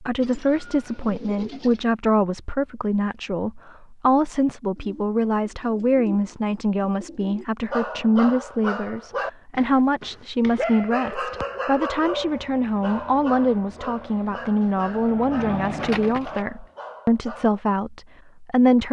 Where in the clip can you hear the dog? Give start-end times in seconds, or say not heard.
7.7-17.6.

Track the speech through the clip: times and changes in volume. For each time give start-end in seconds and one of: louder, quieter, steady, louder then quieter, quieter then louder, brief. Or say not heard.
0.0-18.8 steady.